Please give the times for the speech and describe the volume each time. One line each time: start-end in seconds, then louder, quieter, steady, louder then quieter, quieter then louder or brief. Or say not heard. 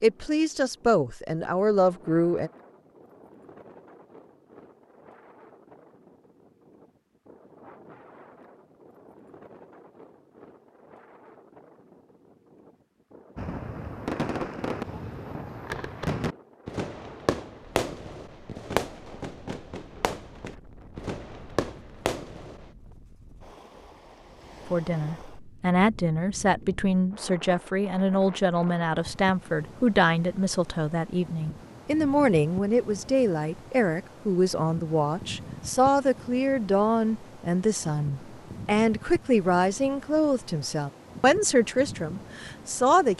0.0-2.5 brief
24.6-43.1 steady.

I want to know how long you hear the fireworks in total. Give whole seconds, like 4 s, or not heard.
9 s.